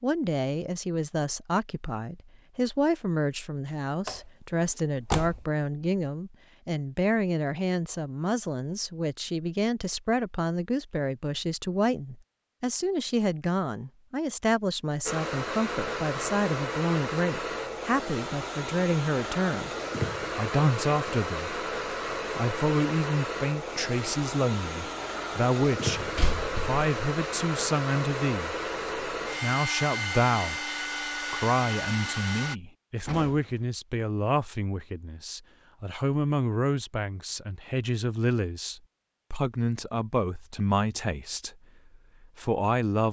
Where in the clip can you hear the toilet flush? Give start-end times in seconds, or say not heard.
not heard.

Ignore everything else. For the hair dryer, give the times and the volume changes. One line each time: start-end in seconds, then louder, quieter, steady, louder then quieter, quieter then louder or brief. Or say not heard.
15.1-32.5 steady.